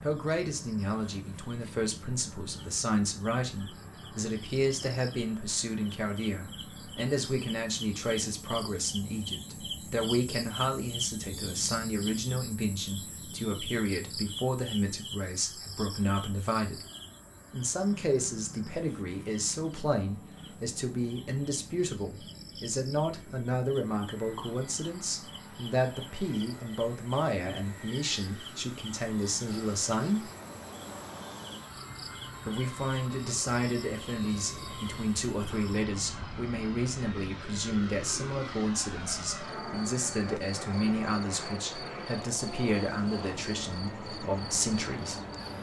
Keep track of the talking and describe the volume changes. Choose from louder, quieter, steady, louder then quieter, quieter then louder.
steady.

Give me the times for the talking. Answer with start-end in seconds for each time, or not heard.
0.0-16.9, 17.5-30.3, 32.5-45.2.